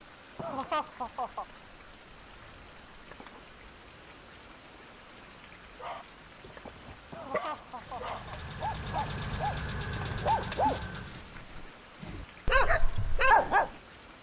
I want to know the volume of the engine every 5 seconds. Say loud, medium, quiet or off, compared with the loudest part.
off, loud, loud.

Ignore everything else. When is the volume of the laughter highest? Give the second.
1 s.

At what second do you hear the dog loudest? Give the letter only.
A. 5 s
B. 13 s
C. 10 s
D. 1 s
B.